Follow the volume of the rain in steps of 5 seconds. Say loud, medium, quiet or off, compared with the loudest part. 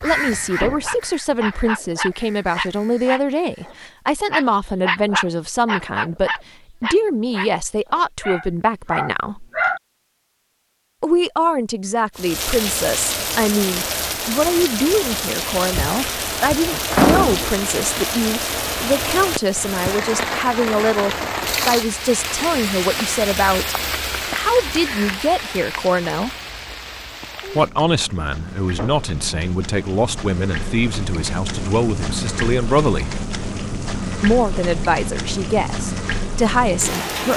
off, off, loud, loud, loud, medium, loud, loud.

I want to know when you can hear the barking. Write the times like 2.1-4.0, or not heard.
0.6-9.8.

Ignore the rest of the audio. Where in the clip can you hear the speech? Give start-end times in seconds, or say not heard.
0.0-9.4, 11.0-26.3, 27.5-33.1, 34.2-37.3.